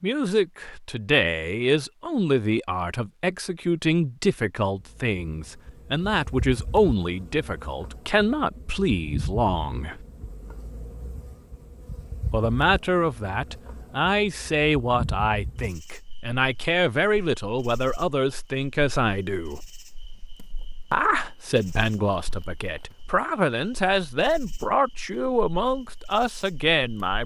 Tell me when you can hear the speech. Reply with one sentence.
You can hear the speech from 0.0 to 10.0 s, from 12.3 to 19.6 s and from 20.9 to 27.2 s.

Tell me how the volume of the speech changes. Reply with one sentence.
The loudness of the speech stays about the same.